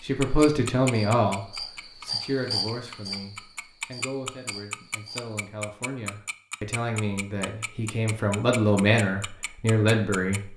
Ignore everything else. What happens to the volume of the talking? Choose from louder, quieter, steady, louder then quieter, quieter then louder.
quieter then louder.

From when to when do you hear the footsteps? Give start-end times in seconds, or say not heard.
not heard.